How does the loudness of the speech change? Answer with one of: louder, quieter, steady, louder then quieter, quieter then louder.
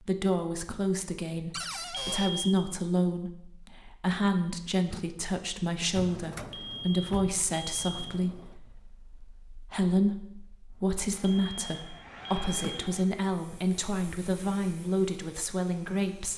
steady.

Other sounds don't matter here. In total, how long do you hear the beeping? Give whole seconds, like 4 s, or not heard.
4 s.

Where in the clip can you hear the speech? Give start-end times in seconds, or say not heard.
0.0-16.3.